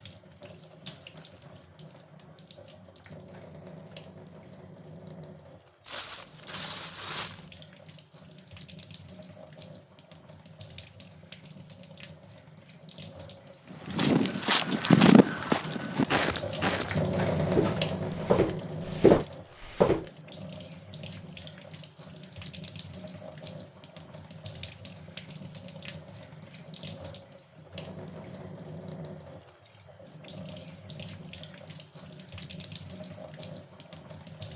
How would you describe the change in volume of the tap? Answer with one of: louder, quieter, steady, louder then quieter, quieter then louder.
louder then quieter.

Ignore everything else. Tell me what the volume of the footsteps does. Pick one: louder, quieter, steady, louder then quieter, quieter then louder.
quieter then louder.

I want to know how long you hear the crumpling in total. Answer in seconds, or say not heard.
2 s.